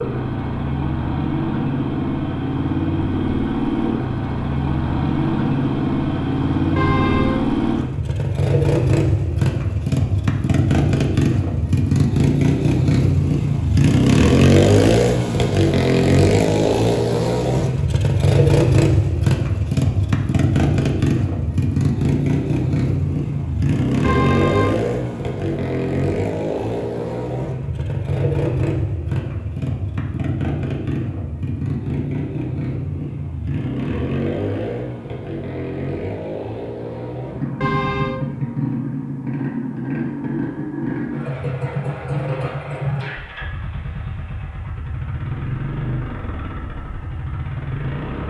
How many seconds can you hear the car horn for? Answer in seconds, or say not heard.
2 s.